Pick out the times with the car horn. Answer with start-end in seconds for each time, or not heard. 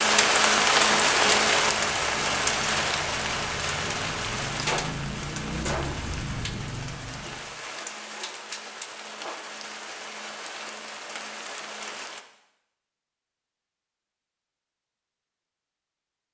not heard.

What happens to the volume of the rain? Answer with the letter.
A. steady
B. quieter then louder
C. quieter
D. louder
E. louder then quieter
C.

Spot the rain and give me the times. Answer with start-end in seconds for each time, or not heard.
0.0-12.2.